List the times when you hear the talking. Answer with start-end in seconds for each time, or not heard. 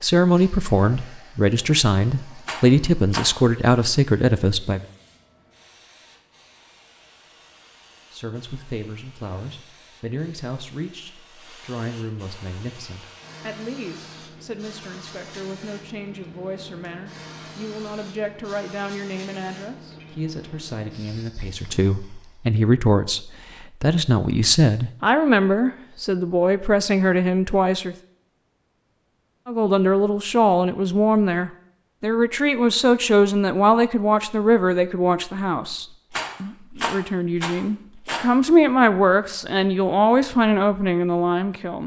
0.0-4.8, 8.1-27.9, 29.4-41.8.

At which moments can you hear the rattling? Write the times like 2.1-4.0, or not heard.
2.5-3.3, 36.1-38.2.